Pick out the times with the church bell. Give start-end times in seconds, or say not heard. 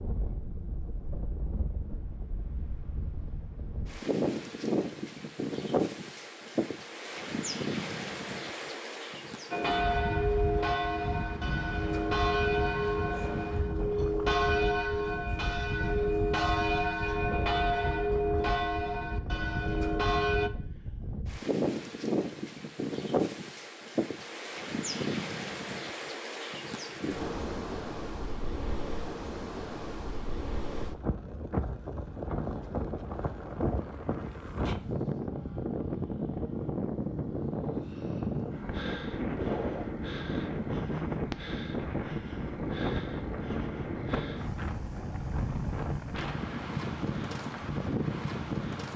9.5-20.5.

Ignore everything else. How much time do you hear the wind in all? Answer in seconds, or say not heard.
49 s.